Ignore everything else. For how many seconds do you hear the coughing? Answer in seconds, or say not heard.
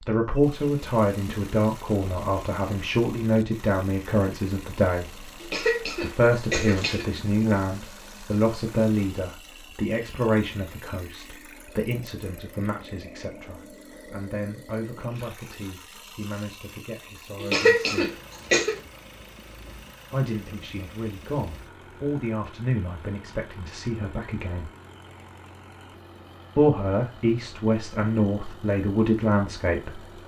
3 s.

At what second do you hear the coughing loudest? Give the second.
18 s.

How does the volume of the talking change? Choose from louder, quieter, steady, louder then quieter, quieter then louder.
quieter then louder.